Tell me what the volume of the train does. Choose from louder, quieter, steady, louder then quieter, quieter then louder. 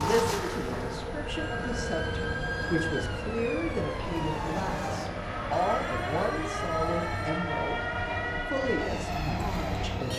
steady.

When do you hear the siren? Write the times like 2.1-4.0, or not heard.
0.0-10.1.